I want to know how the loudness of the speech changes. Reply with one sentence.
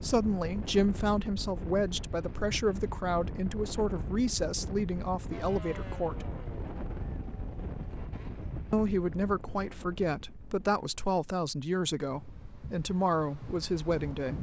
The volume of the speech stays about the same.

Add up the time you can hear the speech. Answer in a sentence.
You can hear the speech for 12 seconds altogether.